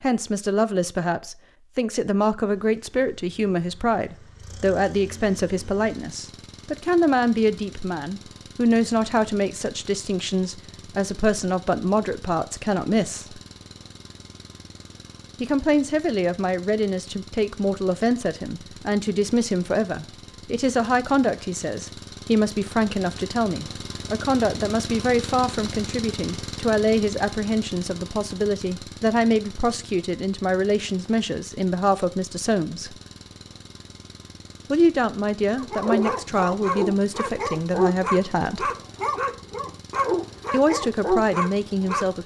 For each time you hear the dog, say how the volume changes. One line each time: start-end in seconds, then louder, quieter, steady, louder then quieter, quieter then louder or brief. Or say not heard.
35.5-42.2 steady.